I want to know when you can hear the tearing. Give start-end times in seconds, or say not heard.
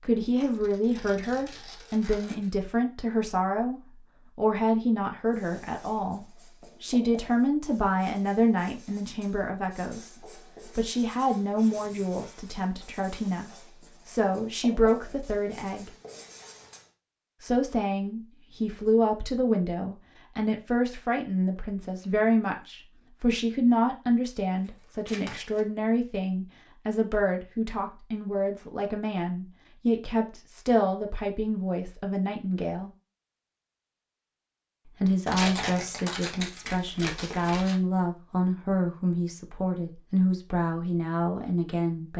0.4-2.5, 25.1-25.6, 35.2-37.8.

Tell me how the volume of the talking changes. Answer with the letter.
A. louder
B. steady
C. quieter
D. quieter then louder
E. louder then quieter
B.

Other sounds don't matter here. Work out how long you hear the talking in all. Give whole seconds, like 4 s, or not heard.
38 s.